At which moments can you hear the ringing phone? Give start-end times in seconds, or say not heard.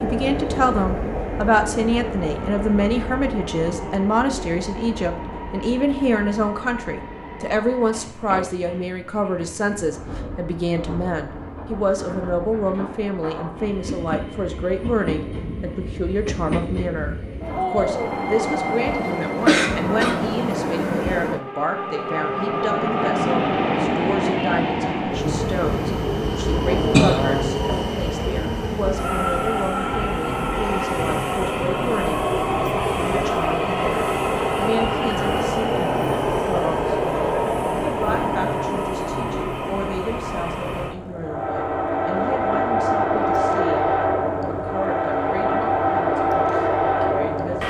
not heard.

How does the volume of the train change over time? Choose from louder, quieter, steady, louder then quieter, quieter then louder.
louder.